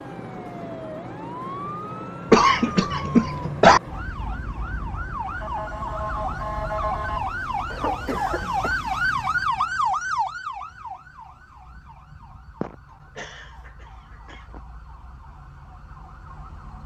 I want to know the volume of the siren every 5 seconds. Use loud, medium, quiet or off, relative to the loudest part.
medium, loud, medium, quiet.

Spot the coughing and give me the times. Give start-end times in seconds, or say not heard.
2.3-3.8, 7.7-8.8, 12.6-14.6.